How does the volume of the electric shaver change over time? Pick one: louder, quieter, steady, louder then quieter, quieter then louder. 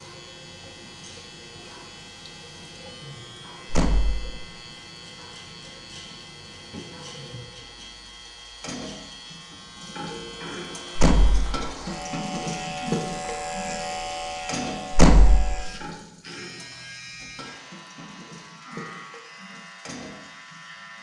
louder then quieter.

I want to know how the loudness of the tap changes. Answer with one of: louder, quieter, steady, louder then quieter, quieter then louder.
louder then quieter.